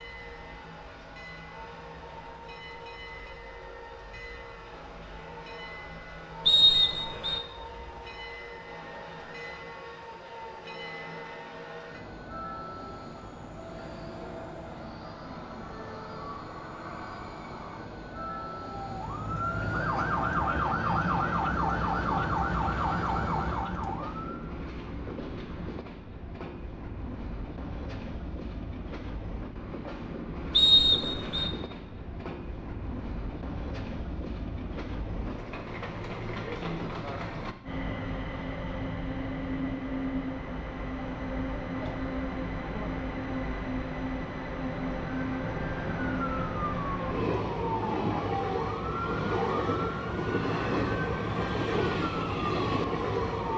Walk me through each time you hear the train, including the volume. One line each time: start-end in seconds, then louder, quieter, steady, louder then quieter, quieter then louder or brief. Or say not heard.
0.0-53.5 louder.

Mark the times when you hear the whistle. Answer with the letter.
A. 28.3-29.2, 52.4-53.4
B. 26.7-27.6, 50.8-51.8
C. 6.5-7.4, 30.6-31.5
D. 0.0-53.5
C.